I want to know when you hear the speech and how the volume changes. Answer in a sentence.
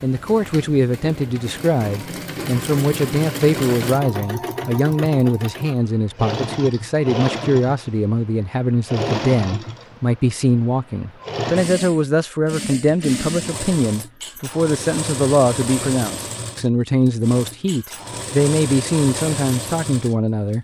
The speech can be heard from 0.0 to 20.5 s, at a steady volume.